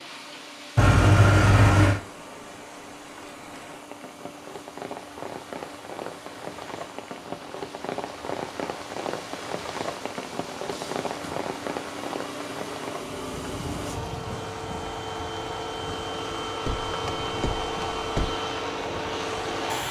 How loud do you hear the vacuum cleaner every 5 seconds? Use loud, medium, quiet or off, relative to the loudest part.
quiet, quiet, medium, loud.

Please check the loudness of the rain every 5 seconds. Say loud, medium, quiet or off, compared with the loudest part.
medium, loud, loud, medium.